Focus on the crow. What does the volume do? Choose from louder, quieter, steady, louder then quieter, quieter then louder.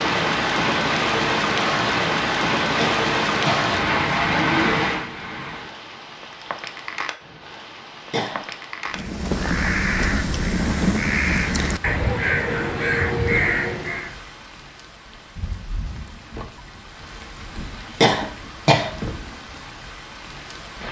steady.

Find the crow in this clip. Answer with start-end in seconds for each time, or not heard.
8.9-14.2.